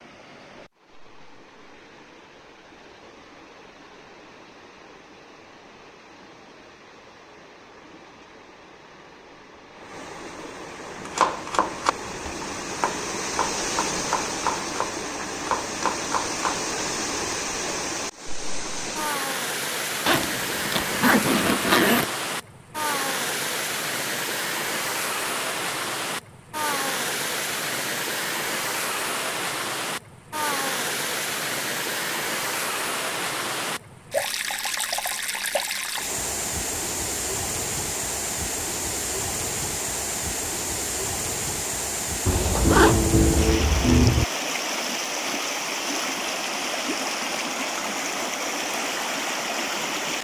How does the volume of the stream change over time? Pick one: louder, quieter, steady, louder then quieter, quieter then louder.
louder.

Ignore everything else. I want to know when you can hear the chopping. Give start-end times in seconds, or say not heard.
11.1-16.6.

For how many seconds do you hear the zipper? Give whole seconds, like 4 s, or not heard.
4 s.